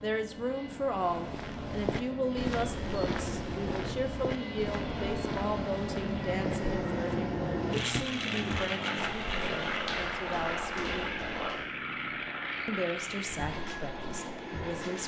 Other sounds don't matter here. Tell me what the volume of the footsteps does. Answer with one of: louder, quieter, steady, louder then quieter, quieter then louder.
quieter.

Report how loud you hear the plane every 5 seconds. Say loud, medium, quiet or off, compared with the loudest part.
medium, loud, loud.